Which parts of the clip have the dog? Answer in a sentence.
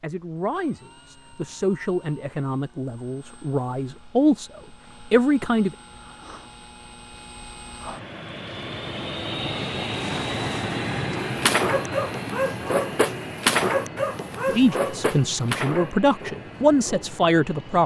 The dog can be heard from 11.2 to 17.1 s.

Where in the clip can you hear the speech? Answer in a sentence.
You can hear the speech from 0.0 to 5.8 s and from 14.4 to 17.8 s.